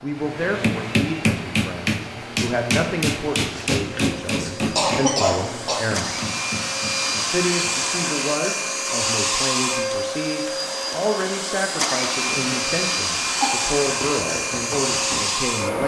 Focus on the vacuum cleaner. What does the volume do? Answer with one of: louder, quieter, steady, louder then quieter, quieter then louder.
louder.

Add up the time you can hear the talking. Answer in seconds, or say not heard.
15 s.